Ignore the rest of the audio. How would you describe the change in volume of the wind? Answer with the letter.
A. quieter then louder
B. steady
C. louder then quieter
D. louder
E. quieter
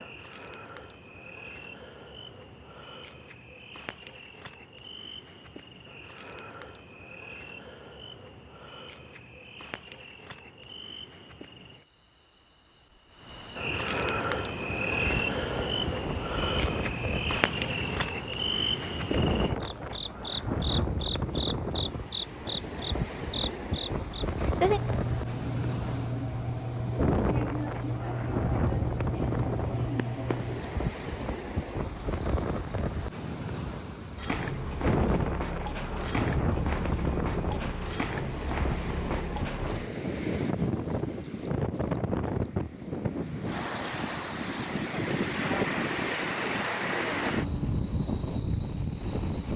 B.